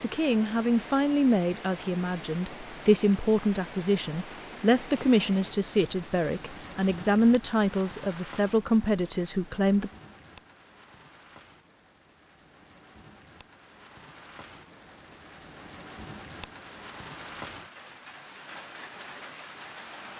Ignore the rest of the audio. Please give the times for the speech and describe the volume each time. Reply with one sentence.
The speech can be heard from 0.0 to 9.9 s, at a steady volume.